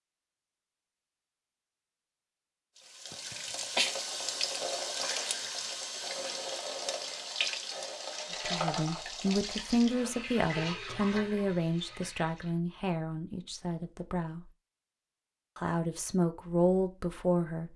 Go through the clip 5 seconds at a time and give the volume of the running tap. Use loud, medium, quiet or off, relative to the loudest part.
loud, loud, medium, off.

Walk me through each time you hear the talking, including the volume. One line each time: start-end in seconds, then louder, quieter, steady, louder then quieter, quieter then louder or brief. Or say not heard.
8.4-14.4 quieter
15.6-17.7 brief.